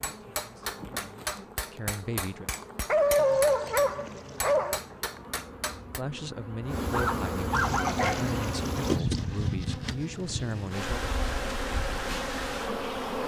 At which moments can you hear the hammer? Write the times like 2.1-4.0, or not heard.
0.0-6.0.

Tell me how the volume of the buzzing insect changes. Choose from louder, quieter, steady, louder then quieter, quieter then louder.
louder.